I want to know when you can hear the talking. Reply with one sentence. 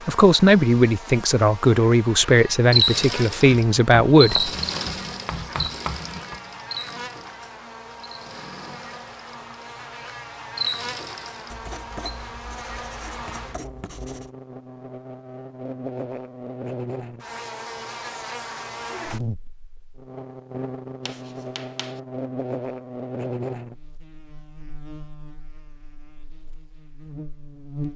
You can hear the talking from 0.1 to 4.5 s.